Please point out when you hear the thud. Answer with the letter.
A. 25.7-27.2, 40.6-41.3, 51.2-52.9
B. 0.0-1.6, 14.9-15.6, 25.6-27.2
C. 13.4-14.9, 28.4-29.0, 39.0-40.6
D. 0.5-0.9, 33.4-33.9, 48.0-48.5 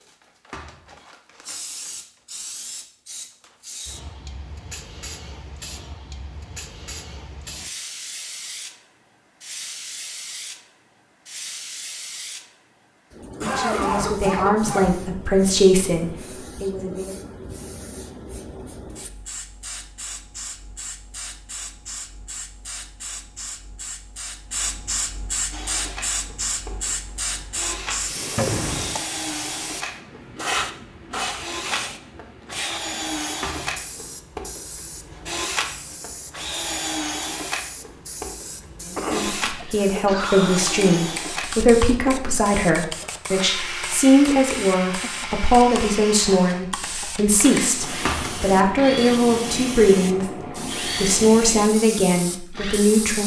D.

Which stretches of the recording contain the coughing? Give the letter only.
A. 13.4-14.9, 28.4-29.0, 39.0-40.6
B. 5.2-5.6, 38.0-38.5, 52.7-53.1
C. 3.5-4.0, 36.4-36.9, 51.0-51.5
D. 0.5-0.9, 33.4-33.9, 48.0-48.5
A.